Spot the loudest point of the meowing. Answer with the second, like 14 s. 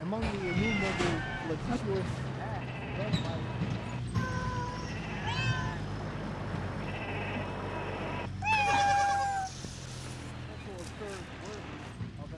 9 s.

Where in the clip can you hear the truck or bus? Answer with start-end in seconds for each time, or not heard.
0.0-12.3.